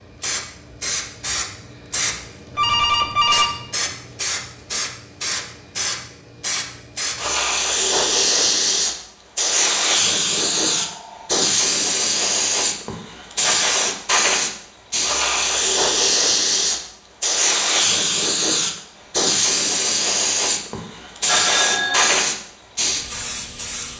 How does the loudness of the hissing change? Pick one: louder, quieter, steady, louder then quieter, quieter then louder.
louder.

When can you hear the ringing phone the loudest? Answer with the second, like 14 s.
3 s.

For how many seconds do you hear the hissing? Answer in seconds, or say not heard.
24 s.